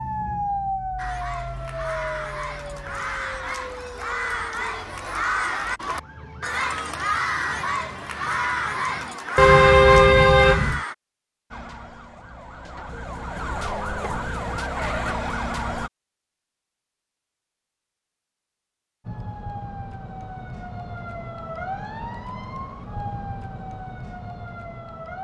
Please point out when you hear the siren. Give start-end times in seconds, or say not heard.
0.0-9.2, 11.5-15.9, 19.0-25.1.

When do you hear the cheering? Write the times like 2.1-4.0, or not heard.
0.9-10.9.